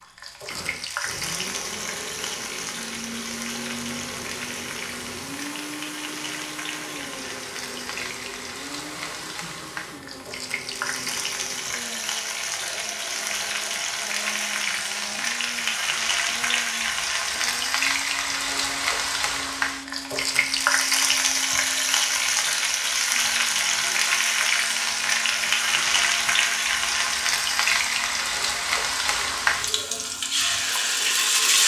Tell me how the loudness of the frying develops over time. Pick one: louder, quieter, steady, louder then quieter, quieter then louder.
louder.